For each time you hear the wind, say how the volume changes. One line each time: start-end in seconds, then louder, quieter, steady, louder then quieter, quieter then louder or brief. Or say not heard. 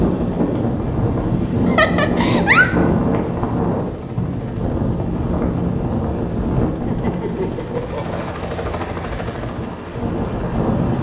0.0-10.9 quieter.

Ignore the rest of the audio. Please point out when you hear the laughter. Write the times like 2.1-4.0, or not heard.
1.6-2.7, 6.8-8.2.